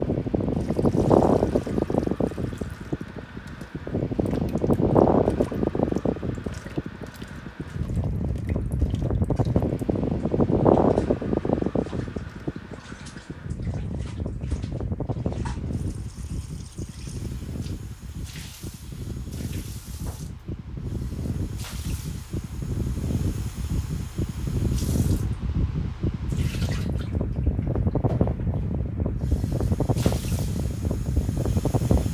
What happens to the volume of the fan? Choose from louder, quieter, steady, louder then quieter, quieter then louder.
quieter then louder.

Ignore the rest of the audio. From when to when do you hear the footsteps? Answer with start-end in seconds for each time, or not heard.
not heard.